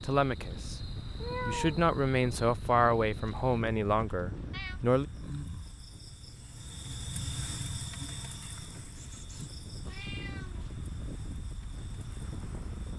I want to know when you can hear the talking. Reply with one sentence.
You can hear the talking from 0.0 to 0.8 s and from 1.4 to 5.0 s.